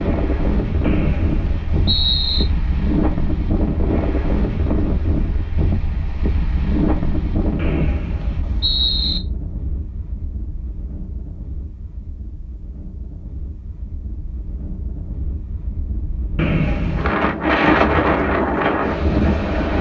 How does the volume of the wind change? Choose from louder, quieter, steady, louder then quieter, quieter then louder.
quieter then louder.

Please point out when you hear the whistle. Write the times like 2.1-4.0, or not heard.
0.8-2.5, 7.5-9.2, 16.4-17.1.